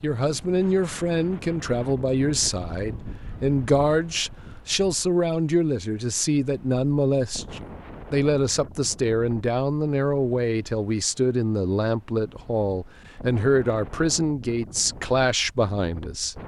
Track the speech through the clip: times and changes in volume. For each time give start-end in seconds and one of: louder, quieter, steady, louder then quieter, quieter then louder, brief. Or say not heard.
0.0-16.4 steady.